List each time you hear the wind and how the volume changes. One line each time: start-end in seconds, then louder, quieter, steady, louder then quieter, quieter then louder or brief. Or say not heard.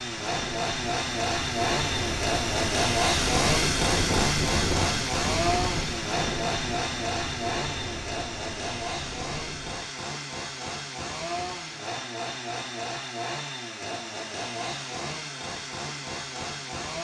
0.0-9.8 louder then quieter.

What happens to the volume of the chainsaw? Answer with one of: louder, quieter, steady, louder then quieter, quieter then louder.
quieter.